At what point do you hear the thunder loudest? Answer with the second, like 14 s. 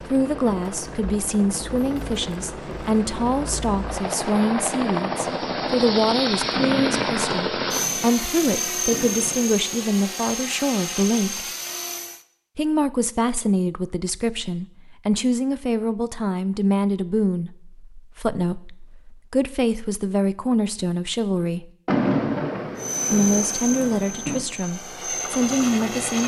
22 s.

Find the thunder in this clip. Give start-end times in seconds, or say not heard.
6.5-9.4, 21.9-24.4.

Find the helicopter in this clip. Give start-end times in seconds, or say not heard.
0.0-12.2, 22.8-26.2.